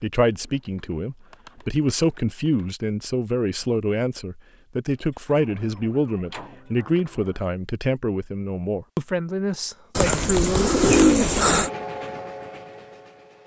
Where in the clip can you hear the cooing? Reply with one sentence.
You can hear the cooing from 0.8 to 2.6 s, from 4.9 to 7.3 s and from 9.9 to 11.7 s.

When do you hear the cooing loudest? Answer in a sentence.
The loudest moment of the cooing is at 11 seconds.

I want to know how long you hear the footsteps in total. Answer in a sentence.
The footsteps can't be heard in this clip.